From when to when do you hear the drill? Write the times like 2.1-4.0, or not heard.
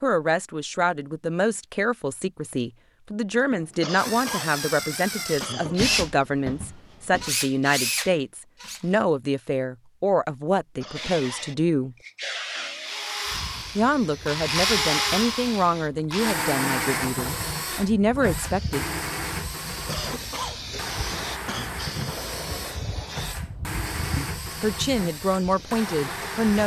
3.4-9.0, 12.8-26.6.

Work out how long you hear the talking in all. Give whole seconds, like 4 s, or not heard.
20 s.